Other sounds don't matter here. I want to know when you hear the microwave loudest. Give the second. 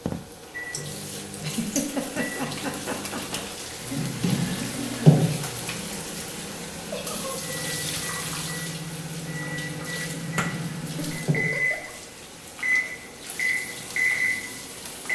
14 s.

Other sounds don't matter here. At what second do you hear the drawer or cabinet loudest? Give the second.
5 s.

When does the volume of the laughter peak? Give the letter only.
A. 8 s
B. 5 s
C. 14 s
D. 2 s
D.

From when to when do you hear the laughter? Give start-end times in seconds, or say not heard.
1.4-3.2, 6.9-7.6, 10.9-11.9.